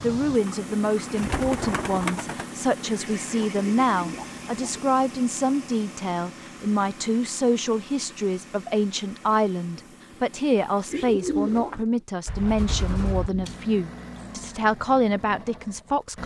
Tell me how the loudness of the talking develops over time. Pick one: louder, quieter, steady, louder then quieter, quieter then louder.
steady.